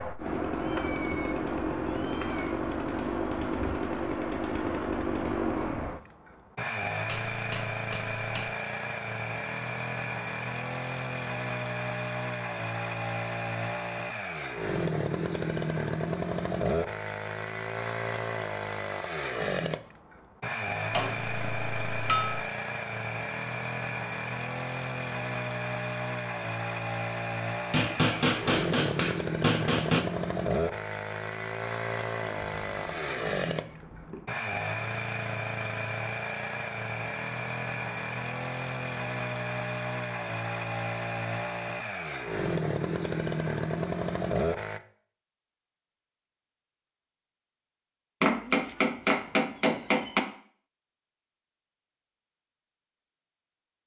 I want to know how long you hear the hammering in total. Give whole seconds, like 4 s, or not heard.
7 s.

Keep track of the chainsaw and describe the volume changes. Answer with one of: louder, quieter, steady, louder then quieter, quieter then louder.
steady.